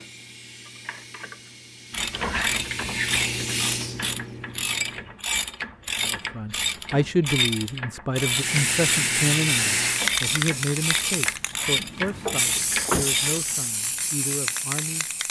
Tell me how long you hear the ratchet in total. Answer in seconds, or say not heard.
12 s.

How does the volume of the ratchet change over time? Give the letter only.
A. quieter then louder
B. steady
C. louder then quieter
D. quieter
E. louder
B.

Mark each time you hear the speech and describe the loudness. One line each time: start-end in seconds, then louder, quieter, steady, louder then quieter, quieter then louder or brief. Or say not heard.
6.0-15.1 quieter.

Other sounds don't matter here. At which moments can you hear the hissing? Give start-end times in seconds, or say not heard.
0.0-5.2, 8.3-15.2.